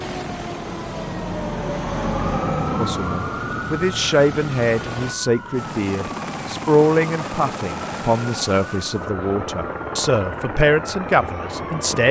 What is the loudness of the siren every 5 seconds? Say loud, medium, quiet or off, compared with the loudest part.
loud, medium, medium.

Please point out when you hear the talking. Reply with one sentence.
You can hear the talking from 2.8 to 12.0 s.